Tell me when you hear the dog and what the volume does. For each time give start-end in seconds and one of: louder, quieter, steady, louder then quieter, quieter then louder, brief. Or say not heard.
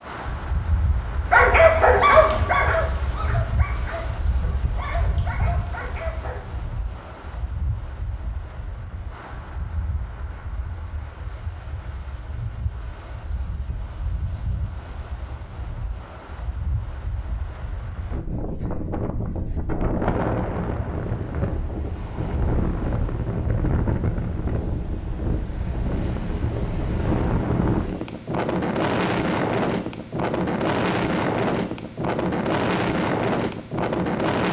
1.3-6.5 quieter.